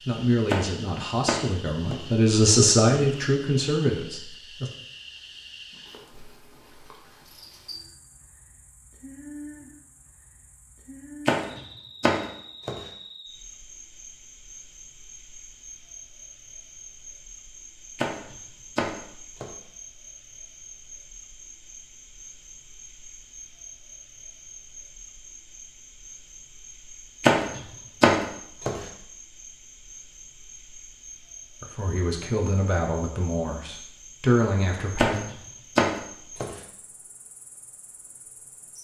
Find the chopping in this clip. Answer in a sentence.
You can hear the chopping from 0.5 to 2.0 s, from 11.2 to 12.8 s, from 17.9 to 19.5 s, from 27.2 to 28.8 s and from 35.0 to 36.5 s.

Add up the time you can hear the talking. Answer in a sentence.
The talking can be heard for 8 seconds in total.